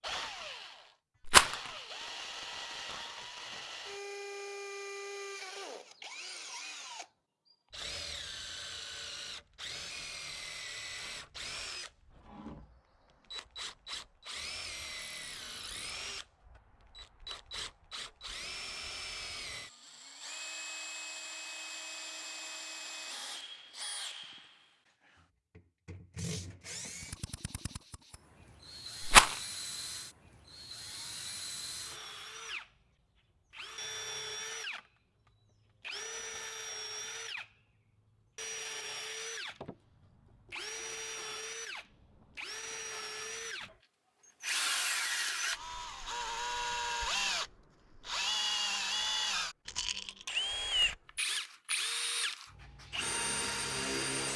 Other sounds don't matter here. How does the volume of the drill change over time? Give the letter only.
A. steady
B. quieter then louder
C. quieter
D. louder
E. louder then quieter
D.